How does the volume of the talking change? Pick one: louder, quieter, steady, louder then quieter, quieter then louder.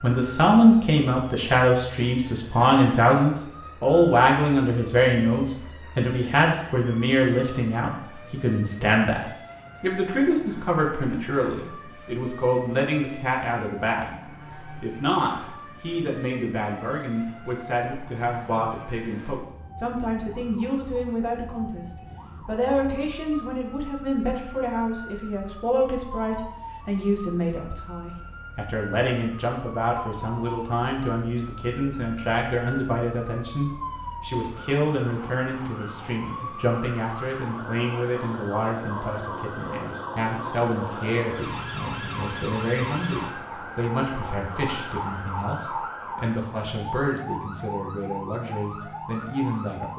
quieter.